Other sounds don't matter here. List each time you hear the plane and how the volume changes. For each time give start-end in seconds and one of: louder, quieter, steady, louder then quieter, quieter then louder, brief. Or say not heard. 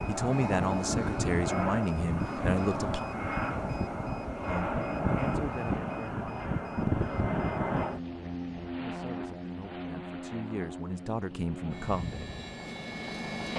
0.0-13.5 quieter.